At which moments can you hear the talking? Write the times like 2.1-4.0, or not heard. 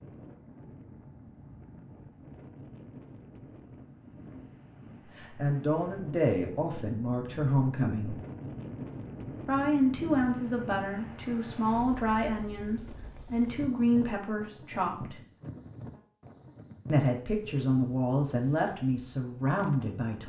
5.2-8.2, 9.4-15.2, 16.9-20.2.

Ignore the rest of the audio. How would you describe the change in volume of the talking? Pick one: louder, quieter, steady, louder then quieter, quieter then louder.
steady.